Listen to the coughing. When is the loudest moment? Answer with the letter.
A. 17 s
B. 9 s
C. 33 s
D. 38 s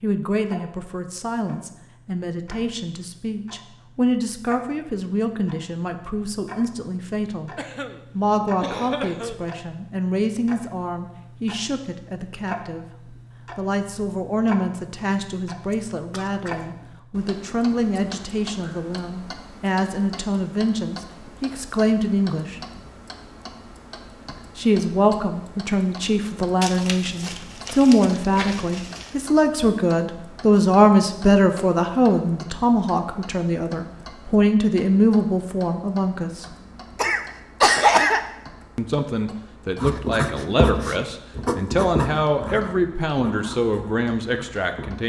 D.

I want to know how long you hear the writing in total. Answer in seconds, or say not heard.
5 s.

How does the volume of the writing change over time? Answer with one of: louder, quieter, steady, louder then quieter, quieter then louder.
quieter.